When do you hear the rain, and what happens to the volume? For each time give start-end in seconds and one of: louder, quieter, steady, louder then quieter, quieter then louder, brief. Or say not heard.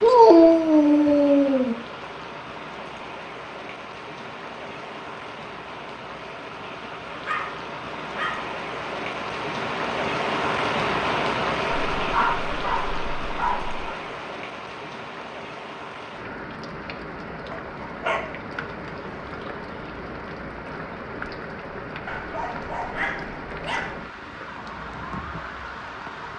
0.0-26.3 louder then quieter.